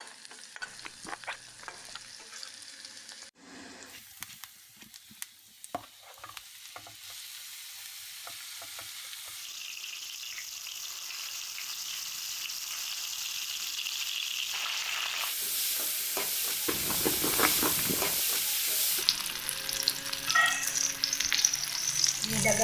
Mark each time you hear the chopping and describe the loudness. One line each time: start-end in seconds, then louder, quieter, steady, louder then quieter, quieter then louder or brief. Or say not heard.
not heard.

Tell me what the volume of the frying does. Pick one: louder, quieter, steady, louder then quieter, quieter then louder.
louder.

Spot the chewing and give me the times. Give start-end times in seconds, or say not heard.
0.6-2.2, 16.6-18.2.